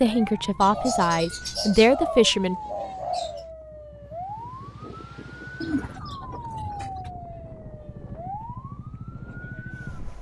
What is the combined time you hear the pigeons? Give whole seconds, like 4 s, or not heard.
4 s.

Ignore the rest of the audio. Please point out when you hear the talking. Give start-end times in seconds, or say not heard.
0.0-2.5.